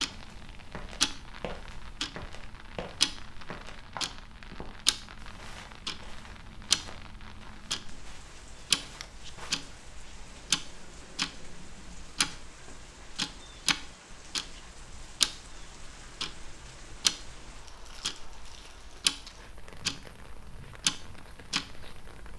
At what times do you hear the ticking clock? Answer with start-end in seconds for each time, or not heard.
0.0-22.3.